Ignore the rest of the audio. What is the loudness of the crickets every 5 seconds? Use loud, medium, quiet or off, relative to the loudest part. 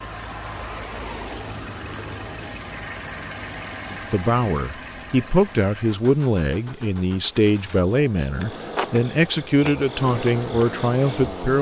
quiet, medium, loud.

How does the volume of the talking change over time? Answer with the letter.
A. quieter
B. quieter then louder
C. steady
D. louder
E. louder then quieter
C.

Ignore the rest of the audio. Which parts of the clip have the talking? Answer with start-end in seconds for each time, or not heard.
3.9-11.5.